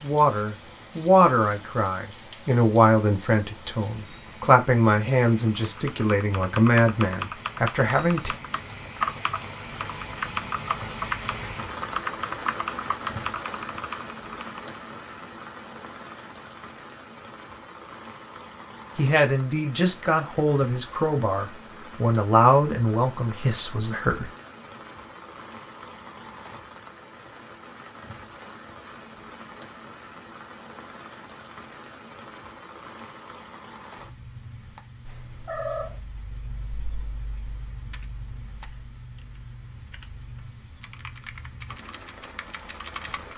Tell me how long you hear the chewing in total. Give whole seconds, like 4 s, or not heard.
not heard.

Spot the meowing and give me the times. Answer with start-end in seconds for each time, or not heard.
35.0-36.0.